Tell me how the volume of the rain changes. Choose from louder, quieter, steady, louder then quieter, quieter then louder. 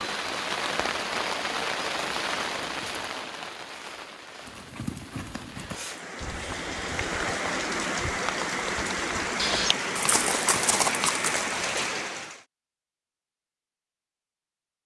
quieter then louder.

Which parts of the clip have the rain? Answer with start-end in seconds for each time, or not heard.
0.0-12.4.